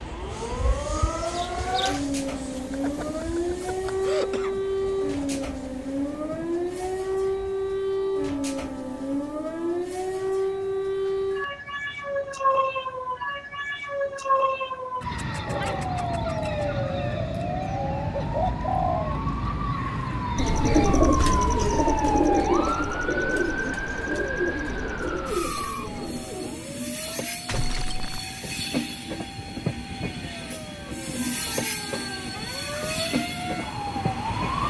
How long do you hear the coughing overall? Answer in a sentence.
You can hear the coughing for 3 seconds altogether.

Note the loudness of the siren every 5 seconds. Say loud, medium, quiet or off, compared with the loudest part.
loud, loud, loud, loud, loud, medium, medium.